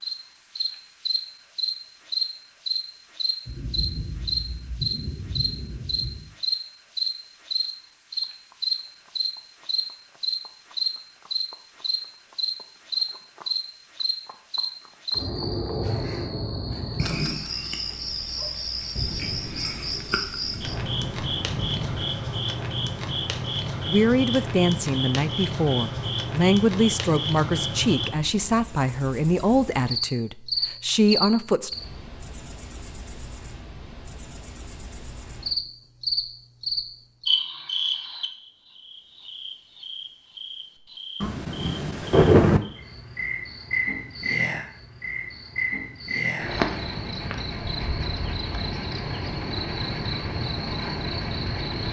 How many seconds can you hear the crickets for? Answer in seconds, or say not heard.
52 s.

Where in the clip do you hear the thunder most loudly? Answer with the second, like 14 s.
42 s.